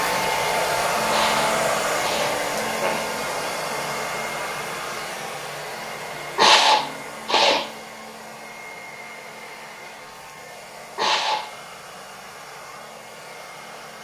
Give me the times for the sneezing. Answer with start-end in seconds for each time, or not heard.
1.1-3.0, 6.3-7.7, 10.9-11.5.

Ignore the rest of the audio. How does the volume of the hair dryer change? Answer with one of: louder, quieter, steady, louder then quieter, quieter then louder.
quieter.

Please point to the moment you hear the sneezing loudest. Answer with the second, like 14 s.
7 s.